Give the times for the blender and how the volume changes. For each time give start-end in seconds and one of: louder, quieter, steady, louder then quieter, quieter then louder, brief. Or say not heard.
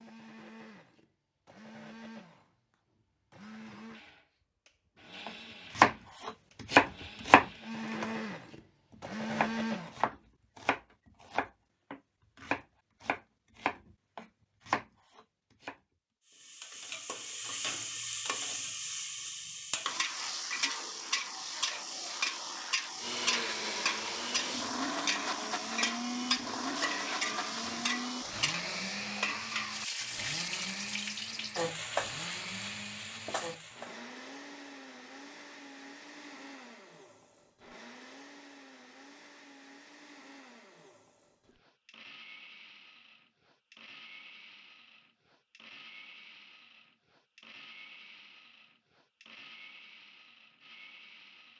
0.0-9.9 louder
22.9-51.5 quieter.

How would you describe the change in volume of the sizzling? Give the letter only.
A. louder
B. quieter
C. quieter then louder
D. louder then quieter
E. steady
E.